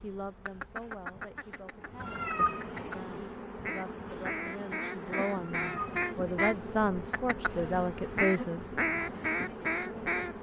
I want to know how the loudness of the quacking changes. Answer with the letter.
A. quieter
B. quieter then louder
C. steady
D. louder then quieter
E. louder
E.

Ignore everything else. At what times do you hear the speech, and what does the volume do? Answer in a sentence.
The speech can be heard from 0.0 to 8.7 s, getting louder.